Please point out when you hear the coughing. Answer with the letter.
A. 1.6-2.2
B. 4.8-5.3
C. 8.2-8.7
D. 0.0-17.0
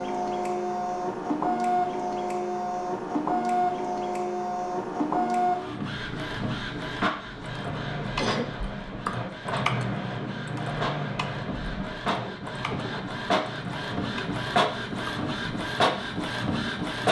C.